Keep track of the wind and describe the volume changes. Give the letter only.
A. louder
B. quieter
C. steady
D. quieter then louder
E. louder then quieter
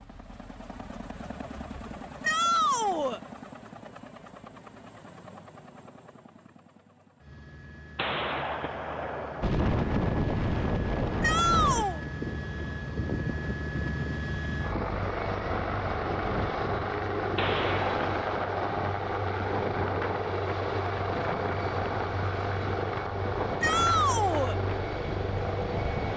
B.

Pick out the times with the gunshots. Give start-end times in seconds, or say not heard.
8.0-9.5, 17.4-18.8.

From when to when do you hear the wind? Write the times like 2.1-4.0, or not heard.
9.4-26.1.